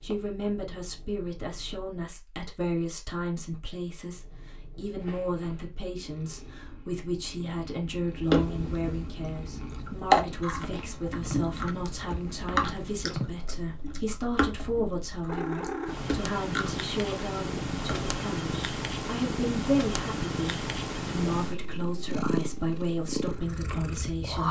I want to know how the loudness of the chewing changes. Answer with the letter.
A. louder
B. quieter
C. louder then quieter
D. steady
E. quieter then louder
B.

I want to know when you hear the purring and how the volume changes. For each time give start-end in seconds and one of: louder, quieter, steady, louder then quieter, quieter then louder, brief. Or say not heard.
0.0-1.9 brief
4.0-24.4 louder.